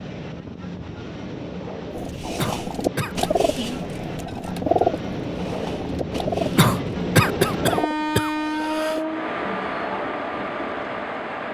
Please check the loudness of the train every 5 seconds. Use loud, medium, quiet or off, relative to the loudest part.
medium, loud, loud.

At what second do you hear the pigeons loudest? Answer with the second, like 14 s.
5 s.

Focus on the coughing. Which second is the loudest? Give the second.
7 s.